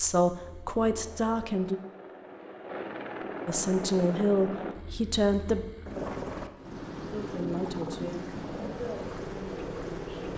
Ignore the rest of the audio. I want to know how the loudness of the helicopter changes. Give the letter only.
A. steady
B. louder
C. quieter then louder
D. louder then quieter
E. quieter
B.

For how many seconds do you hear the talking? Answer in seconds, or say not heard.
7 s.